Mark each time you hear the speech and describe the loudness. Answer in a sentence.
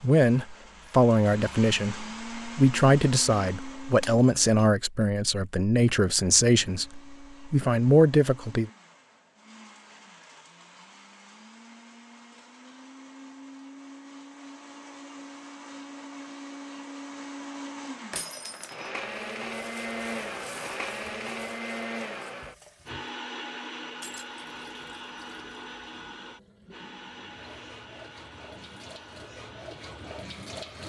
The speech can be heard from 0.0 to 8.7 s, at a steady volume.